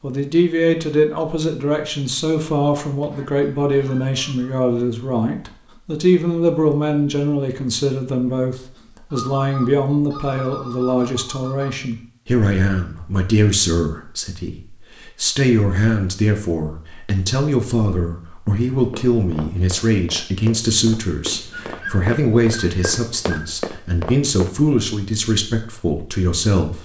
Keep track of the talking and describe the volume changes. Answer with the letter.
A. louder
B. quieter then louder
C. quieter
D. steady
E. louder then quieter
D.